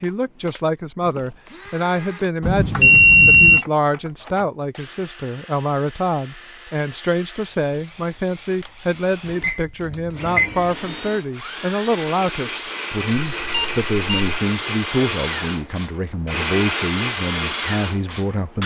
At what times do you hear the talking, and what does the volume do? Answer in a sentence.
The talking can be heard from 0.0 to 18.6 s, at a steady volume.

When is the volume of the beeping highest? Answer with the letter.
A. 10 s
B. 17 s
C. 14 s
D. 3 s
D.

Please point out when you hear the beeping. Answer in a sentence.
You can hear the beeping from 2.4 to 3.6 s, from 9.4 to 10.5 s and from 13.4 to 14.3 s.